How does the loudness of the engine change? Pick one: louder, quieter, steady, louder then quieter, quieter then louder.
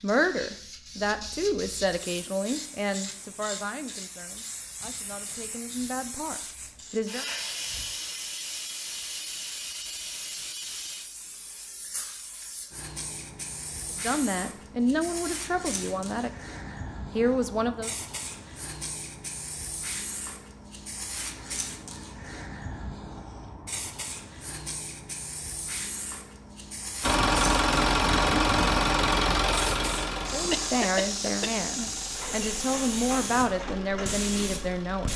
quieter.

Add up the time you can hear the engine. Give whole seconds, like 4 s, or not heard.
8 s.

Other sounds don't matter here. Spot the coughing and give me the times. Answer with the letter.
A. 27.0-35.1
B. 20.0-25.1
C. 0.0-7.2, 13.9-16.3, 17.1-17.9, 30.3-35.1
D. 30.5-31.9
D.